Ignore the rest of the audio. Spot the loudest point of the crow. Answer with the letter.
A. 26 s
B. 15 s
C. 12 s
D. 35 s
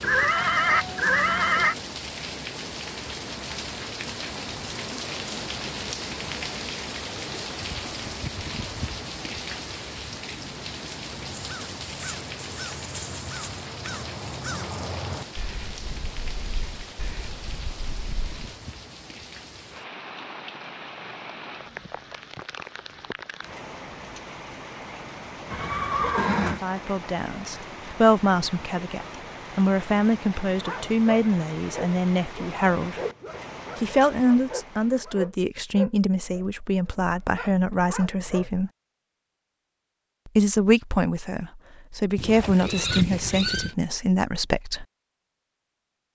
B.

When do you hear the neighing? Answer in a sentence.
The neighing can be heard from 0.0 to 1.8 s, from 25.5 to 26.6 s and from 42.1 to 43.8 s.